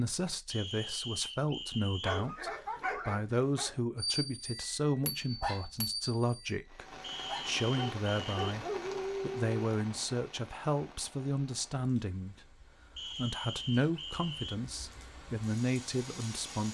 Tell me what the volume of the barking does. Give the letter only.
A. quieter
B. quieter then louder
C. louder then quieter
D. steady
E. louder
B.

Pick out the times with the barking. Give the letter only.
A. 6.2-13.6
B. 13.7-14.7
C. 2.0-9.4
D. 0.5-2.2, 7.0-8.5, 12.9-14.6
C.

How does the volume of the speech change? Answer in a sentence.
The volume of the speech stays about the same.